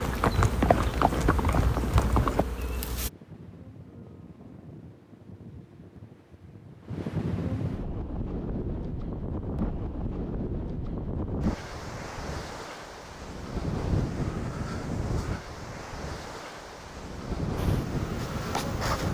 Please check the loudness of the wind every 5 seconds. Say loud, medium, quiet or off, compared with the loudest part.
quiet, loud, loud, loud.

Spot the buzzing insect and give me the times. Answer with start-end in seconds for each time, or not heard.
0.0-3.1, 17.6-19.0.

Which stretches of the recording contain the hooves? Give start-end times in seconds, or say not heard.
0.0-2.5.